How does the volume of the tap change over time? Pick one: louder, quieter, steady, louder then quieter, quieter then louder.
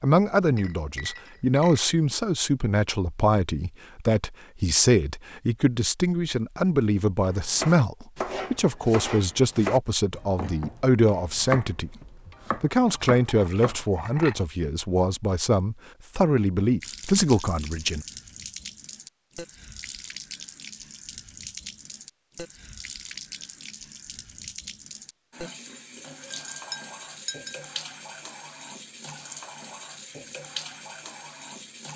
steady.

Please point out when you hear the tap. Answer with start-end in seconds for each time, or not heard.
16.8-31.9.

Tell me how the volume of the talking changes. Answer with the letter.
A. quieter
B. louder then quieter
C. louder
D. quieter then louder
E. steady
E.